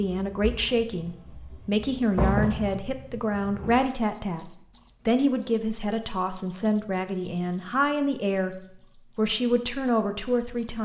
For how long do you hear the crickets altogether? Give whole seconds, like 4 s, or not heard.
11 s.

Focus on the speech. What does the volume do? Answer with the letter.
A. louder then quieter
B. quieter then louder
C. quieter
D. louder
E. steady
E.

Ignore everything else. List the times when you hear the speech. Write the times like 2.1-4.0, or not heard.
0.0-10.8.